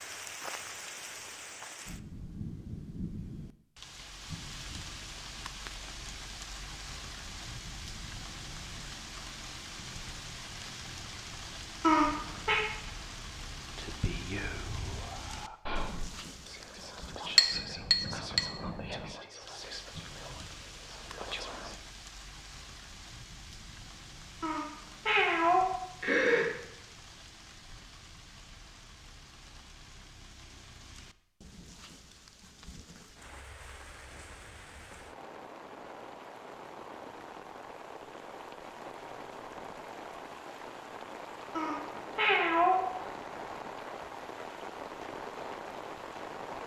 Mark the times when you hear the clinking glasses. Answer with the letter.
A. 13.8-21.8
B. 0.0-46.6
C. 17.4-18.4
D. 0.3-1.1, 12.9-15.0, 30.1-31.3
C.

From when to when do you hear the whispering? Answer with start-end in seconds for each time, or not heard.
13.8-21.8.